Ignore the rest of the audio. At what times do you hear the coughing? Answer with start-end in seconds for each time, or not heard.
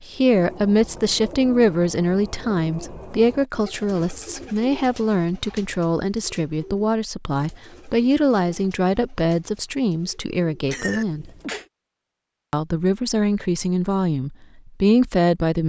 10.7-11.7.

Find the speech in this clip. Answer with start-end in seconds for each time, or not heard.
0.1-11.3, 12.5-15.6.